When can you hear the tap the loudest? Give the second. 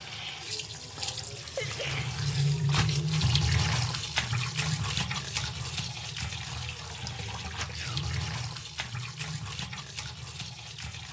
3 s.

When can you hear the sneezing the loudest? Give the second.
2 s.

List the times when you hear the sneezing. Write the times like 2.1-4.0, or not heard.
0.9-2.1, 7.7-8.2.